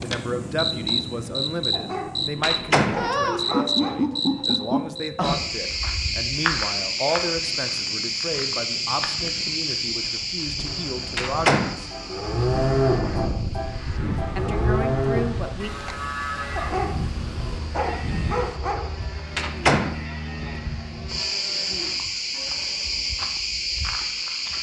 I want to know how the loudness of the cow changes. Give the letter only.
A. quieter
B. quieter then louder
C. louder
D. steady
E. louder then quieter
A.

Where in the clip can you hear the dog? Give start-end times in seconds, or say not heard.
1.7-4.0, 16.6-18.9.